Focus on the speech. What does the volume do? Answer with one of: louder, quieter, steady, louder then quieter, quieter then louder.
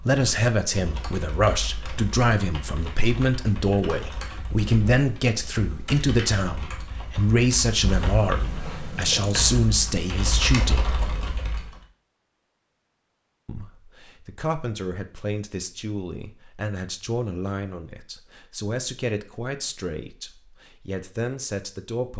quieter.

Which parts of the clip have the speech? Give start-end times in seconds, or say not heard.
0.0-10.9, 13.4-22.1.